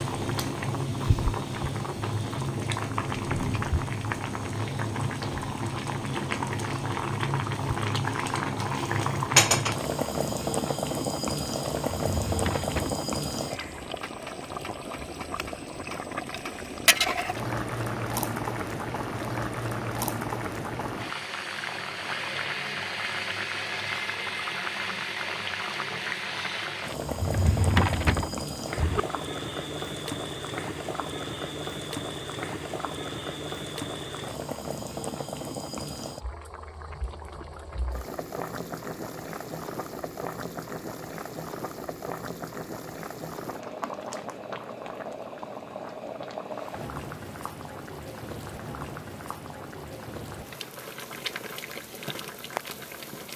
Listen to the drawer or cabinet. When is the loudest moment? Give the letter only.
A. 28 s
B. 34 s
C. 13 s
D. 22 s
A.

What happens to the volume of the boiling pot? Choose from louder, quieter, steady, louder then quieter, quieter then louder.
quieter.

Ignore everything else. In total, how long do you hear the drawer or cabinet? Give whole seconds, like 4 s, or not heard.
3 s.